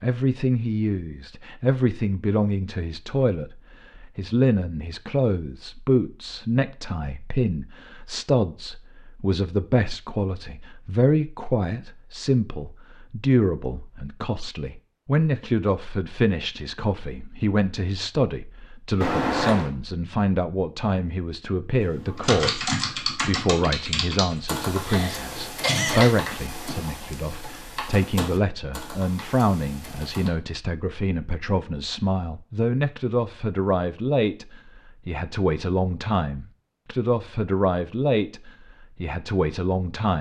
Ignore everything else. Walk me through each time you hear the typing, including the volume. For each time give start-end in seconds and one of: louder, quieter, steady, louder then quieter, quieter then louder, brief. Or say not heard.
22.1-30.3 quieter.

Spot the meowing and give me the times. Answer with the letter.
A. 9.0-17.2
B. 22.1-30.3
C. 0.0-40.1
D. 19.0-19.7
D.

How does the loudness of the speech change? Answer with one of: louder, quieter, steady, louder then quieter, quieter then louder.
steady.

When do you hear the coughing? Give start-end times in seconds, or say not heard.
24.8-26.1.